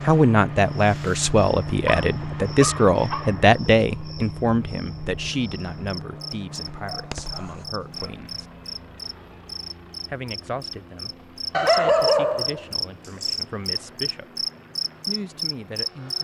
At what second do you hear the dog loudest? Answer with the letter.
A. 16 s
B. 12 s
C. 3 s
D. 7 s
B.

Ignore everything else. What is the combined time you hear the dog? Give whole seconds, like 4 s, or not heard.
5 s.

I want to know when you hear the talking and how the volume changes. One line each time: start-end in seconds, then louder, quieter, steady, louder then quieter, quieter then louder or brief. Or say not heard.
0.0-8.4 quieter
10.1-14.4 quieter then louder
15.1-16.1 brief.